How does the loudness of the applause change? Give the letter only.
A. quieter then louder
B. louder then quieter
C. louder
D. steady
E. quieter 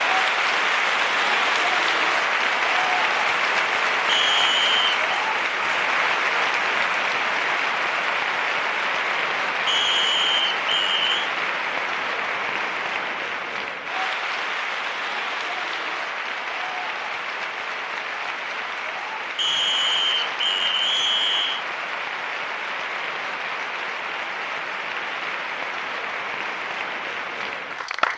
E.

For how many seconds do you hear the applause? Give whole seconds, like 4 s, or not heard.
28 s.